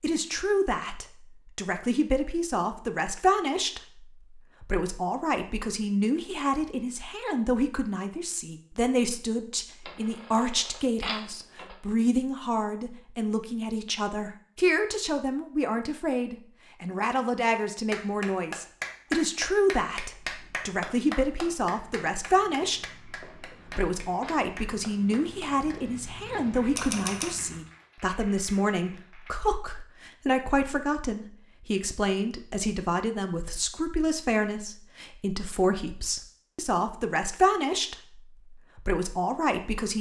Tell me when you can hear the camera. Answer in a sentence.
The camera can be heard from 9.8 to 11.8 s and from 26.8 to 27.4 s.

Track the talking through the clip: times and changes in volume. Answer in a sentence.
The talking can be heard from 0.0 to 39.9 s, at a steady volume.